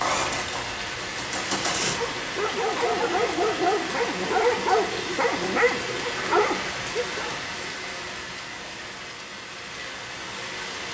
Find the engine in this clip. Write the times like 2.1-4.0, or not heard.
0.0-2.0.